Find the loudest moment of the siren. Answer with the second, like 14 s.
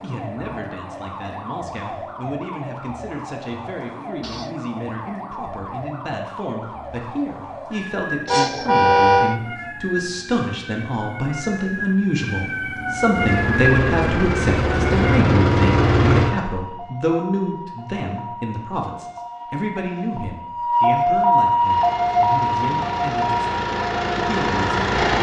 21 s.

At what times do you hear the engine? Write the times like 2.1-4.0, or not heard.
13.1-16.3, 21.6-25.1.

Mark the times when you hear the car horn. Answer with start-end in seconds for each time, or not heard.
8.2-9.4.